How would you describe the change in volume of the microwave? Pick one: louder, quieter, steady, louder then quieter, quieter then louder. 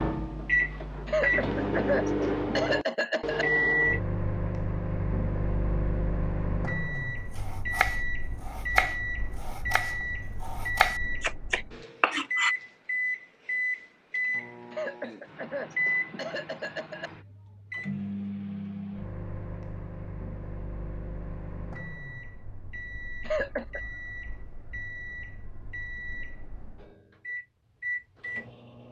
quieter.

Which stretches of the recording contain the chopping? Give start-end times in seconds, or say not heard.
7.3-12.6.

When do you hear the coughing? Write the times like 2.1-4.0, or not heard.
1.1-3.5, 14.7-17.1, 23.2-23.8.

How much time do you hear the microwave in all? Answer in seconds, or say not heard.
29 s.